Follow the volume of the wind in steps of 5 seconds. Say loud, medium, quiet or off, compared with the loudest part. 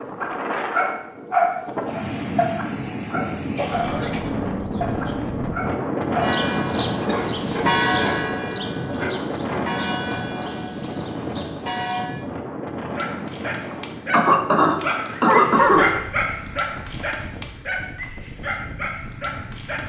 loud, loud, medium, quiet.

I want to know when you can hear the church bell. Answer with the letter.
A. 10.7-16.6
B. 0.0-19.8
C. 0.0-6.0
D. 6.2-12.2
D.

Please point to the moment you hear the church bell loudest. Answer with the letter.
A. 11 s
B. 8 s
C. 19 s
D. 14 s
B.